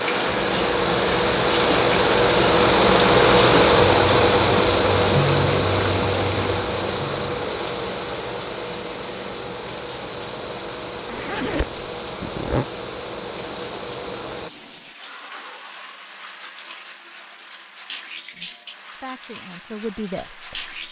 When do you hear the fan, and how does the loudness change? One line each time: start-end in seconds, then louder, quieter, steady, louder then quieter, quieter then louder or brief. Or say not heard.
0.0-14.5 quieter.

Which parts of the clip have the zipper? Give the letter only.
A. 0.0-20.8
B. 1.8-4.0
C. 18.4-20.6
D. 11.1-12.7
D.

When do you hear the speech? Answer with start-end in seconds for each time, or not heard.
18.4-20.6.